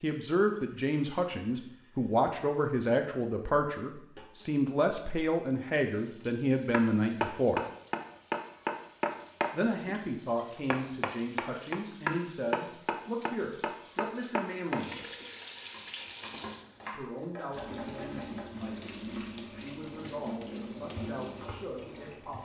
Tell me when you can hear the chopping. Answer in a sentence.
The chopping can be heard from 6.7 to 18.4 s.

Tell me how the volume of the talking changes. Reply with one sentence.
The loudness of the talking goes down.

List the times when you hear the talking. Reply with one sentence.
You can hear the talking from 0.0 to 7.6 s, from 9.5 to 15.1 s and from 16.9 to 22.3 s.